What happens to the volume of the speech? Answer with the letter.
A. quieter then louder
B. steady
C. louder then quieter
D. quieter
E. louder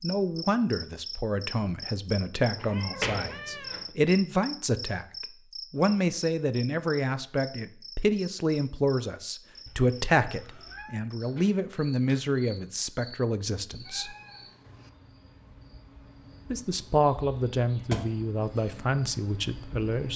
B.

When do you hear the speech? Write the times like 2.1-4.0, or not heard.
0.0-14.2, 16.5-20.1.